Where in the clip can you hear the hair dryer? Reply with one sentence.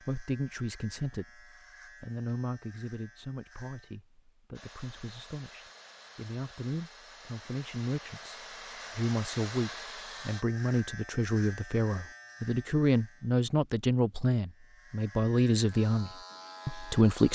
You can hear the hair dryer from 4.5 to 10.4 s.